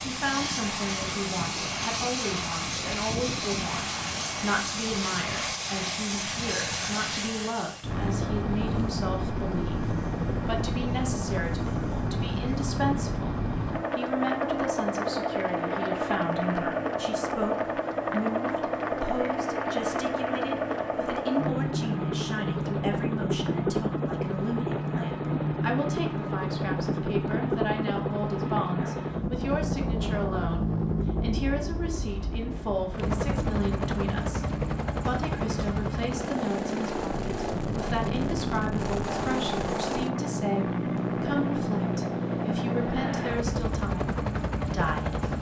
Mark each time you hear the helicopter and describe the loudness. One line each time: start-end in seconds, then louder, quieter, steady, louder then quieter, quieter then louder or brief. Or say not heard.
0.0-45.3 steady.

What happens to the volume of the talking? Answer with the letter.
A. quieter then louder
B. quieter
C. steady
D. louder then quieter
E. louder
C.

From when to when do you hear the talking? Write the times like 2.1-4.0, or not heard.
0.1-45.2.